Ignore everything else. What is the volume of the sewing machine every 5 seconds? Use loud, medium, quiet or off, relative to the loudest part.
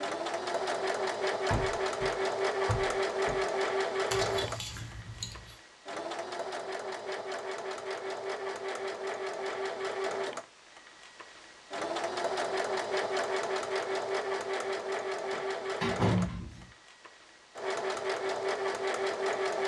loud, medium, loud, loud.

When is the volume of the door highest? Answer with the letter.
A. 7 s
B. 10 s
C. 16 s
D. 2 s
C.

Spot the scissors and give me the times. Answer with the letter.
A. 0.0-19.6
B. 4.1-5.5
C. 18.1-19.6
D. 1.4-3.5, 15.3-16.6
B.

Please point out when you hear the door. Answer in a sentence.
You can hear the door from 1.4 to 3.5 s and from 15.3 to 16.6 s.